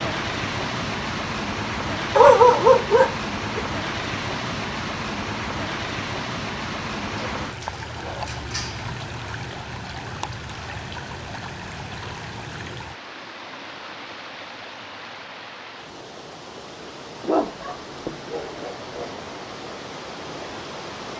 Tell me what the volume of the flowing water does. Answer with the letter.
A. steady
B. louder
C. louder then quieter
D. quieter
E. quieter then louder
D.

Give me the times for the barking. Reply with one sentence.
You can hear the barking from 2.1 to 3.6 s, from 7.2 to 8.9 s and from 17.2 to 19.1 s.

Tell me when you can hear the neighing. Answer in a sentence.
You can't hear the neighing here.